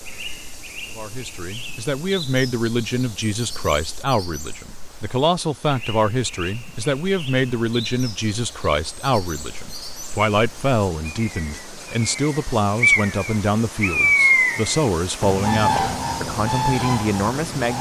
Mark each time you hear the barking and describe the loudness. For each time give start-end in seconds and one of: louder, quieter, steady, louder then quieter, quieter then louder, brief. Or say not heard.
not heard.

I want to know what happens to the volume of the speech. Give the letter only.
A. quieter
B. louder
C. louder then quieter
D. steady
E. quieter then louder
D.